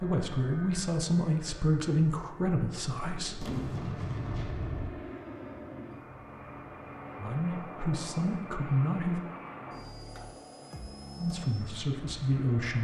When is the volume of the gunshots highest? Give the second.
4 s.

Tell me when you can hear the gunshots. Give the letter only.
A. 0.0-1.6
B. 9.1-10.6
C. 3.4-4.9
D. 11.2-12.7
C.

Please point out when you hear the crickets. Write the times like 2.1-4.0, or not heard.
not heard.